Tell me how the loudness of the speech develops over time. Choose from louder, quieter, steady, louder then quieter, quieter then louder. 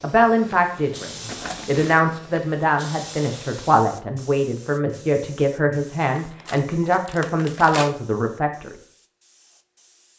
steady.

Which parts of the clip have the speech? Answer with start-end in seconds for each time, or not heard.
0.0-8.8.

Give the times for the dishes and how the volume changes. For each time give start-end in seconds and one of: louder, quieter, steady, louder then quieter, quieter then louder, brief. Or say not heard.
not heard.